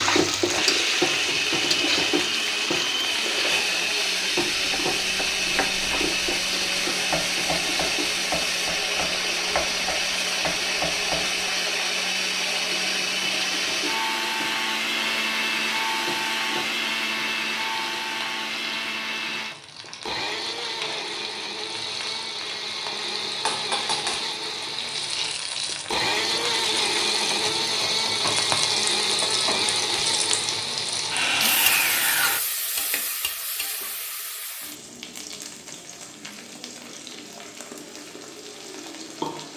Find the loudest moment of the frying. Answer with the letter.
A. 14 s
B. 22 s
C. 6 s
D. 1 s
D.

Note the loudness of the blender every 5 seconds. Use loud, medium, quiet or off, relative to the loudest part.
loud, loud, loud, loud, medium, loud, loud, off.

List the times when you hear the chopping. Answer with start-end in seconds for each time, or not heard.
4.5-11.4.